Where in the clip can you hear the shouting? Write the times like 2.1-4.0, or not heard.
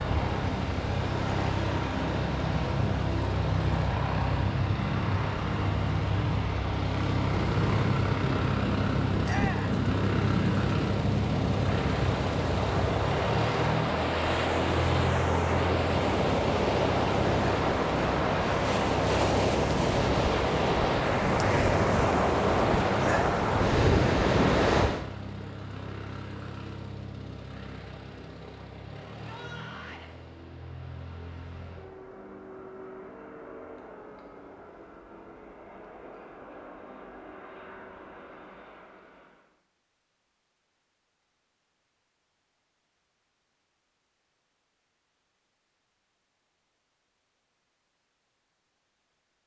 9.2-9.8, 29.2-30.1.